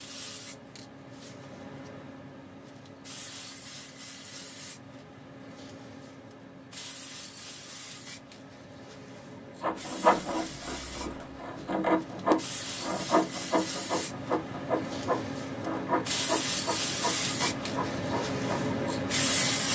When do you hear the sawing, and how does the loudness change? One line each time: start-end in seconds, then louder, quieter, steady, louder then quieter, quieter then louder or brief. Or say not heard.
9.6-18.8 quieter.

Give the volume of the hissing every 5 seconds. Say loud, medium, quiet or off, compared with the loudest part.
quiet, quiet, medium, loud.